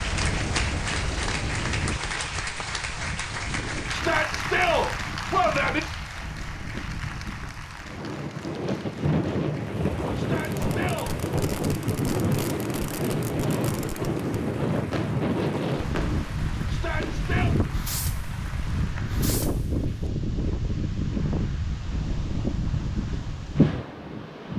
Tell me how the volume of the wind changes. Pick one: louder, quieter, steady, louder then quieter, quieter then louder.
louder.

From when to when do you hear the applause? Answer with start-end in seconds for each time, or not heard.
0.0-19.2.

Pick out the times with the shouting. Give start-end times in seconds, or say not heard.
3.9-5.8, 10.2-11.6, 16.6-17.6.